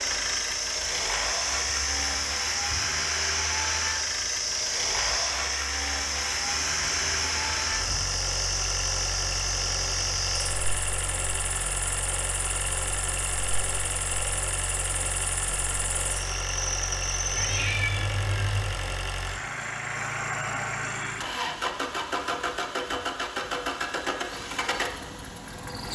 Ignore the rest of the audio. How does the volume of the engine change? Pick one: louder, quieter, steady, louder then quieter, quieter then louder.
steady.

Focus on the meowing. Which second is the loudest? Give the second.
18 s.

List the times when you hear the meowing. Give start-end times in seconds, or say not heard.
6.3-8.1, 17.3-18.7.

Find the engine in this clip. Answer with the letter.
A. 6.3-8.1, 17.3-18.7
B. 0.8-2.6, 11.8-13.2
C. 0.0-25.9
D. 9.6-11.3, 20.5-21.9
C.